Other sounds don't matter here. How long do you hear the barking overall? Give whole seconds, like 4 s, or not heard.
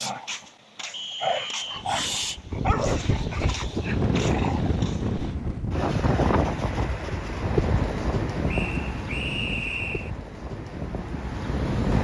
5 s.